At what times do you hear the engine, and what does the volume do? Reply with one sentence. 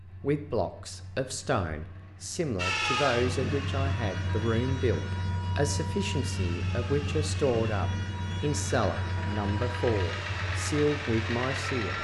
You can hear the engine from 0.0 to 11.9 s, getting louder.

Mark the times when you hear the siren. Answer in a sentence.
The siren can be heard from 2.5 to 11.9 s.